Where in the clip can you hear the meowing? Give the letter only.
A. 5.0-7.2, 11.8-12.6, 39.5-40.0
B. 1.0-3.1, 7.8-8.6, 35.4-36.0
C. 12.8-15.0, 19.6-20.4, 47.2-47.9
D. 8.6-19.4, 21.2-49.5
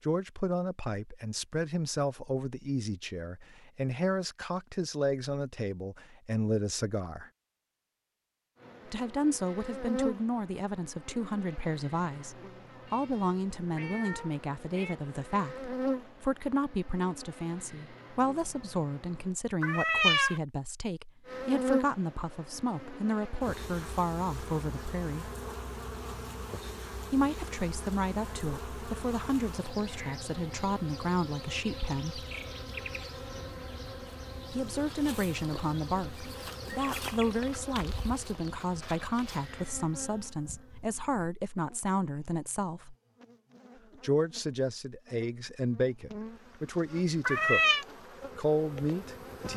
C.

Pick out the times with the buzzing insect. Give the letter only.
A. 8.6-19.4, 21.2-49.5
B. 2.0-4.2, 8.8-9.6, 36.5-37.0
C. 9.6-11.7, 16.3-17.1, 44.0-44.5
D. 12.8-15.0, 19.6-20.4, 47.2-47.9
A.